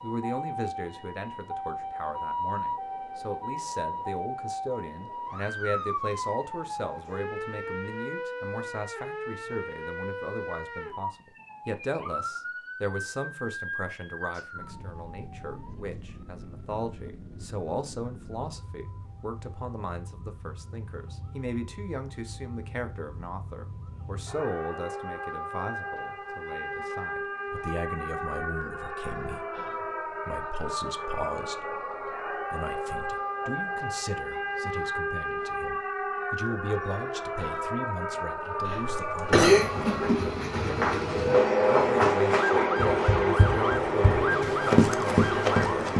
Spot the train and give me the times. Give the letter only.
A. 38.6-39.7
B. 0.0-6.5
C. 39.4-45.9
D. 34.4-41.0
C.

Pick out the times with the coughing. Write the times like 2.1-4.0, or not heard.
38.6-39.7.